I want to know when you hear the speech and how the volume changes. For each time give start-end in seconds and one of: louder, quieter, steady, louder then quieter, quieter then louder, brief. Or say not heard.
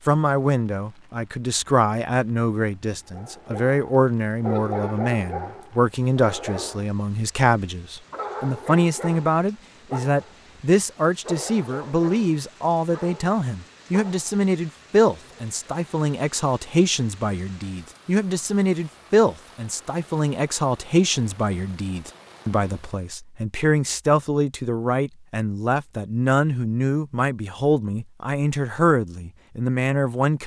0.1-30.4 steady.